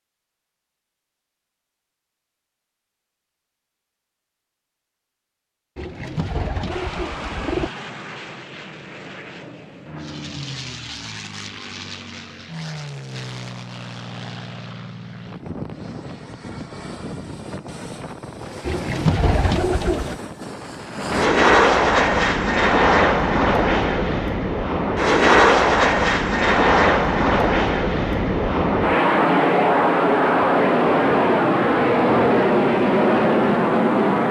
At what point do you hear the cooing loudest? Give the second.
19 s.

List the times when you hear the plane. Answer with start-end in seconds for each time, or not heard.
6.7-34.2.